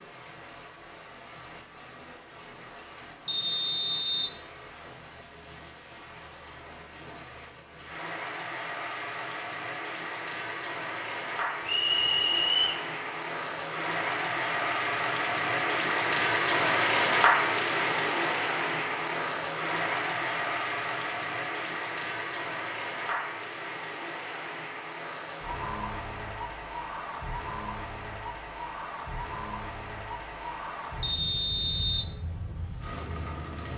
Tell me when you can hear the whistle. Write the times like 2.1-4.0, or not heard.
3.2-4.4, 11.7-12.8, 31.0-32.1.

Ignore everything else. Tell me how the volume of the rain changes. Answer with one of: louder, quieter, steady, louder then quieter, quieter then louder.
louder then quieter.